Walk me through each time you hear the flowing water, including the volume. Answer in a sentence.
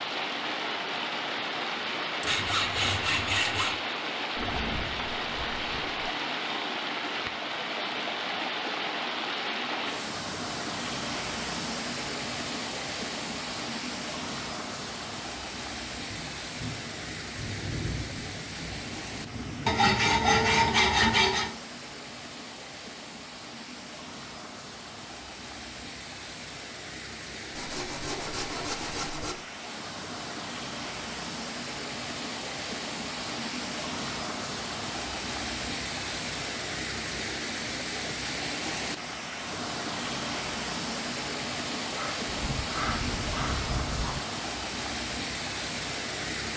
You can hear the flowing water from 0.0 to 46.5 s, getting quieter then louder.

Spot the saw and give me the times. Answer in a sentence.
The saw can be heard from 2.2 to 3.8 s, from 19.6 to 21.5 s, from 27.6 to 29.4 s and from 41.9 to 43.6 s.